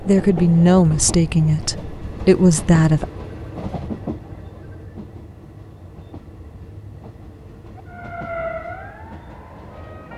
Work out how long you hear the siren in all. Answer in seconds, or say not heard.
2 s.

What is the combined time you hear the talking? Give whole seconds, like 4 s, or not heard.
3 s.